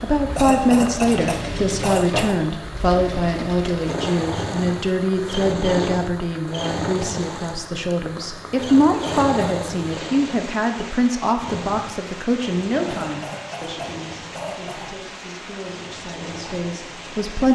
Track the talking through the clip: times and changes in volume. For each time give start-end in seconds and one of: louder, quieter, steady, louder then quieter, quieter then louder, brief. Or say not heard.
0.0-17.5 quieter.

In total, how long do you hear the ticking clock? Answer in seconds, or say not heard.
not heard.